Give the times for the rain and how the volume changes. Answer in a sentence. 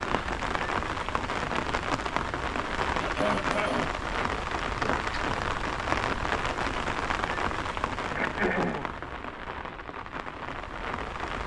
The rain can be heard from 0.0 to 11.4 s, getting quieter.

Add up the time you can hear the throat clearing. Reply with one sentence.
The throat clearing can be heard for 2 seconds in total.